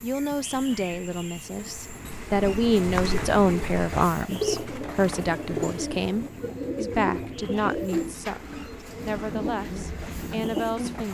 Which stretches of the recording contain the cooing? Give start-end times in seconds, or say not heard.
2.1-11.1.